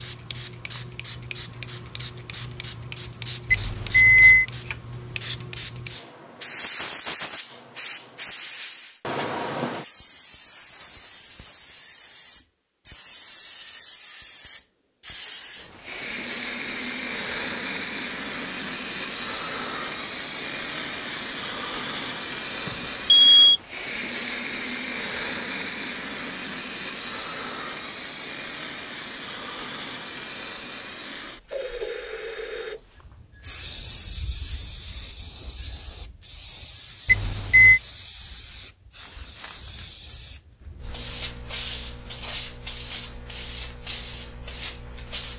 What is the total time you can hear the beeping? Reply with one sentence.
You can hear the beeping for 3 seconds altogether.